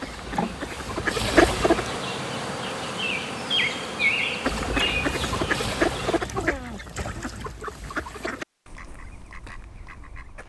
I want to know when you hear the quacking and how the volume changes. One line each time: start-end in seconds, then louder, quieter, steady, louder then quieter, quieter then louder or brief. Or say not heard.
0.0-2.0 brief
4.4-10.4 quieter.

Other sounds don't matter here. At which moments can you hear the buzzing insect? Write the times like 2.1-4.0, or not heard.
0.0-6.2.